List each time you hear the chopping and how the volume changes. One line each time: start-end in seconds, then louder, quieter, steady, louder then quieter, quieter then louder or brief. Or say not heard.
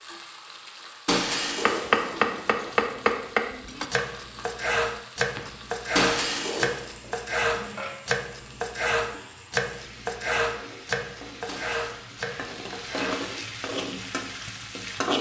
1.6-13.3 quieter.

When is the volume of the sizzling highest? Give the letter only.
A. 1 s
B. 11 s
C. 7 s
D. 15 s
D.